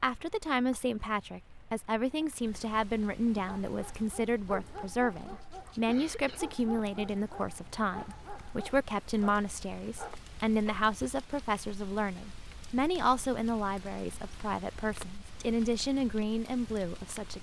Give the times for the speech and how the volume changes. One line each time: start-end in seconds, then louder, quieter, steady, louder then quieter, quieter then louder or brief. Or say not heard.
0.0-17.3 steady.